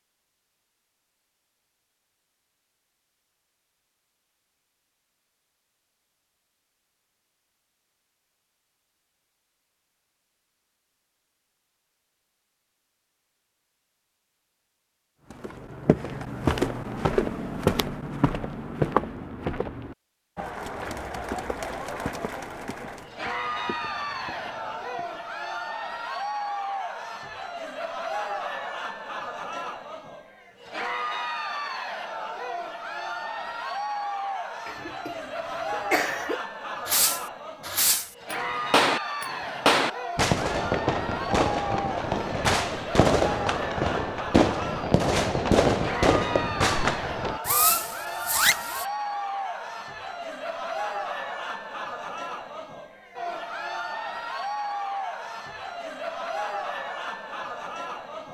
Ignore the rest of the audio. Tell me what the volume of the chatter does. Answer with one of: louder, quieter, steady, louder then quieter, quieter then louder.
steady.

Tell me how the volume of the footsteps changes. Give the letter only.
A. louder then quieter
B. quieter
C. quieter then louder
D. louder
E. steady
B.